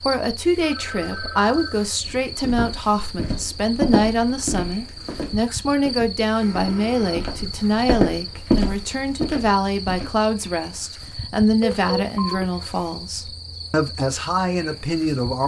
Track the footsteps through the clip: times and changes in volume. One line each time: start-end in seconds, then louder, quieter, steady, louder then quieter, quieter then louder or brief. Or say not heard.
2.0-10.1 quieter then louder.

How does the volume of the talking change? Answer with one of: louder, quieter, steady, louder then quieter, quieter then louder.
steady.